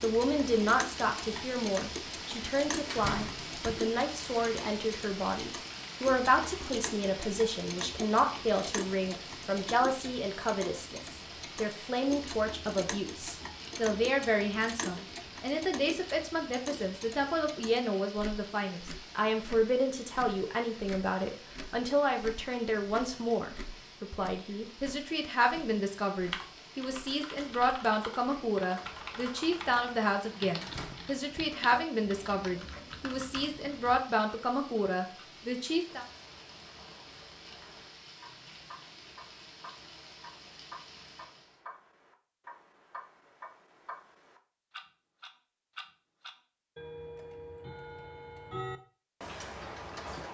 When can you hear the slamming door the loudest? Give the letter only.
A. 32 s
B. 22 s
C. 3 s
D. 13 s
C.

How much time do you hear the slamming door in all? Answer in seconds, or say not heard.
2 s.